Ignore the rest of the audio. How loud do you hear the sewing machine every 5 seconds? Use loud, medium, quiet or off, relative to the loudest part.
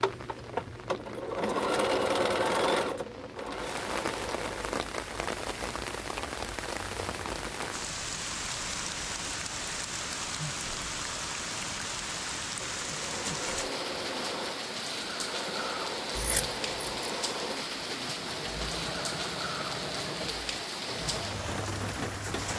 loud, off, medium, medium, medium.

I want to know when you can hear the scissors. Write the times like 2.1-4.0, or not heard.
16.1-17.1.